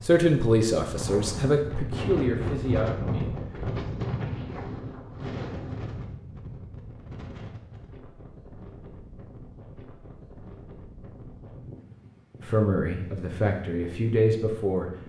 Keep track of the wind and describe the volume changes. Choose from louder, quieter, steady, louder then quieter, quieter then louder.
quieter.